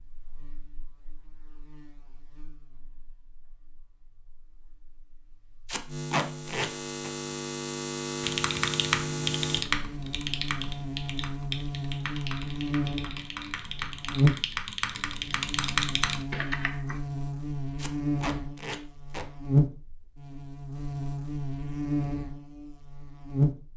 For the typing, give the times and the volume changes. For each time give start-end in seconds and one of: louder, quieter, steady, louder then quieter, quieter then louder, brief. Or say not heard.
8.2-16.9 quieter then louder.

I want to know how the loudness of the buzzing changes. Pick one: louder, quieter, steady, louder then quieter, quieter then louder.
louder.